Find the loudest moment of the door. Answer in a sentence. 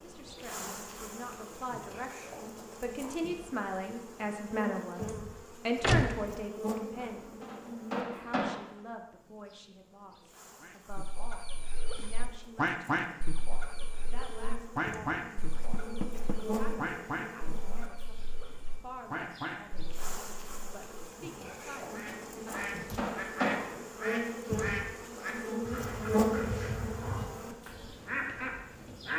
The loudest moment of the door is at 6 seconds.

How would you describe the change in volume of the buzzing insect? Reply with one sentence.
The volume of the buzzing insect goes up.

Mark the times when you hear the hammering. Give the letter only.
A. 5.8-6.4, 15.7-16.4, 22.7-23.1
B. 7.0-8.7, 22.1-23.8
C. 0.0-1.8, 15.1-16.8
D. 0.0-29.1
B.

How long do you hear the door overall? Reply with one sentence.
The door can be heard for 2 seconds in total.